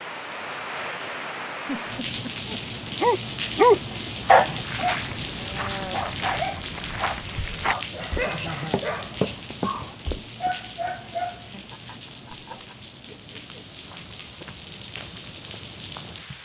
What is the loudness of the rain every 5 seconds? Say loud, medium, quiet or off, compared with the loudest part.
loud, loud, medium, medium.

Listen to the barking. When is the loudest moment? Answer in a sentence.
The volume of the barking peaks at 4 seconds.